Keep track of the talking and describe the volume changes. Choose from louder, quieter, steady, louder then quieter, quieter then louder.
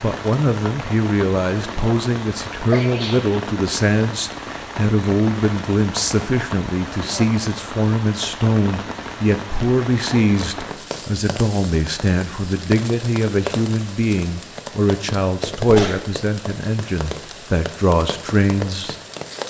steady.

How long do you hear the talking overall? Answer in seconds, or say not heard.
19 s.